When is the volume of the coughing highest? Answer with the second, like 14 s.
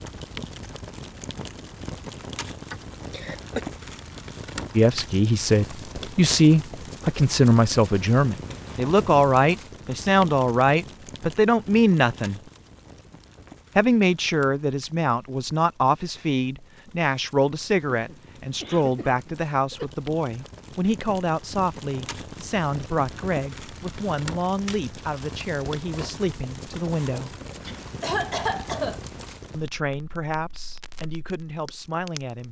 28 s.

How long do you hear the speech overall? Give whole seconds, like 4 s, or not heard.
24 s.